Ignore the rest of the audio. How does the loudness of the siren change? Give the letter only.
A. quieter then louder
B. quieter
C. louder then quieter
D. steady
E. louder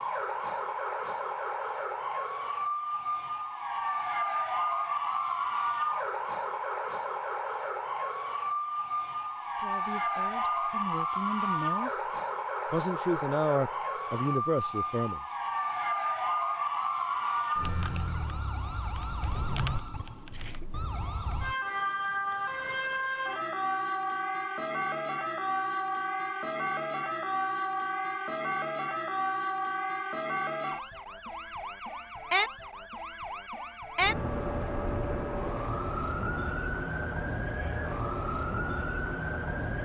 D.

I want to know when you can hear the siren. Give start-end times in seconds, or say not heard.
0.0-39.7.